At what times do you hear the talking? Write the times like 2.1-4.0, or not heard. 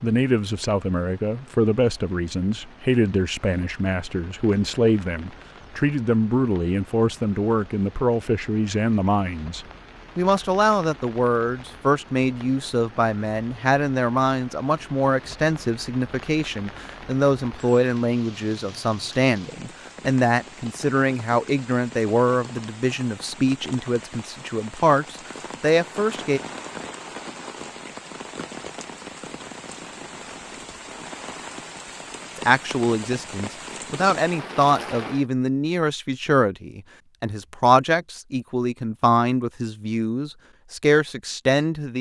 0.0-26.4, 32.4-41.9.